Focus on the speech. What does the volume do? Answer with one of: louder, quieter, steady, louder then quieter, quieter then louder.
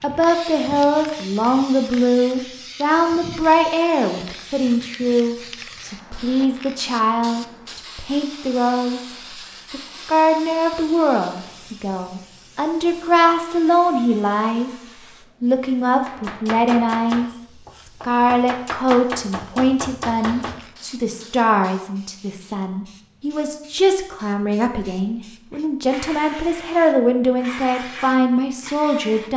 steady.